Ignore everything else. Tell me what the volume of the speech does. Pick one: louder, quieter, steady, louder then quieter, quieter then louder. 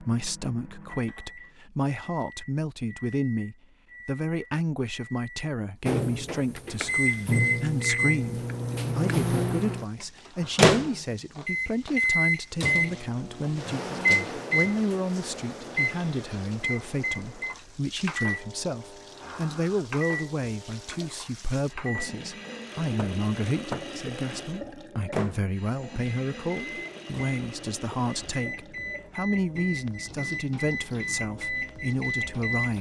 steady.